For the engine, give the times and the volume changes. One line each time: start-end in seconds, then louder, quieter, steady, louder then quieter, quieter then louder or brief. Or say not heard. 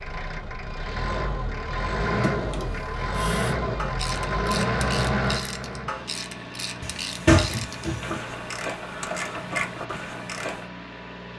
0.0-11.3 quieter.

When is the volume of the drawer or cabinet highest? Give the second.
7 s.